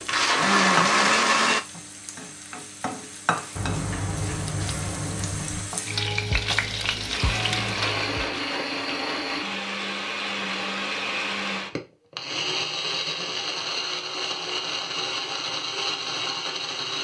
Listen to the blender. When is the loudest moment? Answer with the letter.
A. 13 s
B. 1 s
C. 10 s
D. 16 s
B.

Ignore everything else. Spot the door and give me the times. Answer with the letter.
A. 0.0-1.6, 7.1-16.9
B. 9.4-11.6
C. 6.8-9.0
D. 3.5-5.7
D.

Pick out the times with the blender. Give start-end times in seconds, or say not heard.
0.0-1.6, 7.1-16.9.